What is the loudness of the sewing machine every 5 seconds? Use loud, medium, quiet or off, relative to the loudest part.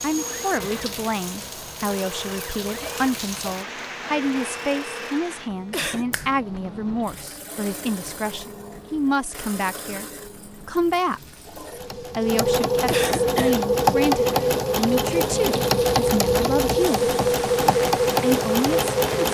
quiet, quiet, loud, loud.